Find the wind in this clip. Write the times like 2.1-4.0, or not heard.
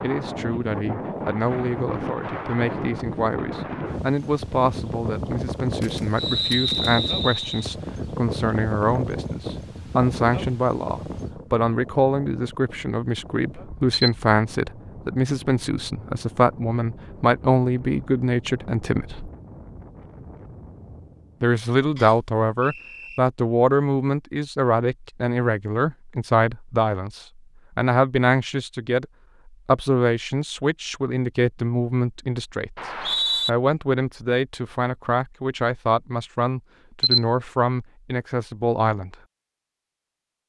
0.0-21.4.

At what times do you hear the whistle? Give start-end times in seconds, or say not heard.
6.2-7.7, 21.9-23.2, 32.8-33.5.